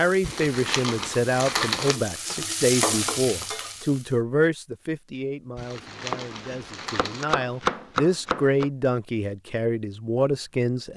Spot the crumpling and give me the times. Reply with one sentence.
The crumpling can be heard from 0.2 to 2.0 s and from 5.5 to 7.2 s.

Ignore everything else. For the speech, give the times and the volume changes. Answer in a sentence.
The speech can be heard from 0.0 to 10.9 s, getting quieter then louder.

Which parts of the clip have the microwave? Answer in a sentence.
You can't hear the microwave here.